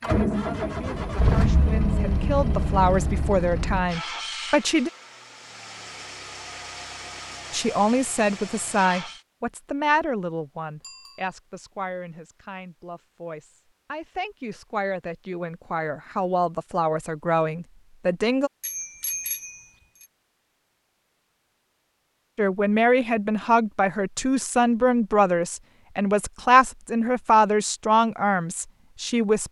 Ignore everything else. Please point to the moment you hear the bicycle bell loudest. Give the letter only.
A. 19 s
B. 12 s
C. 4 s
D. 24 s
A.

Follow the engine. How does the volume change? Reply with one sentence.
The loudness of the engine goes down.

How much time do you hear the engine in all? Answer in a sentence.
The engine can be heard for 9 seconds in total.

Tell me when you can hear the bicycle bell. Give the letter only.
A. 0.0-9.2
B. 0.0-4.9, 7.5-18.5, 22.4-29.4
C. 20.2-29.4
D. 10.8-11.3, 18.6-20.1
D.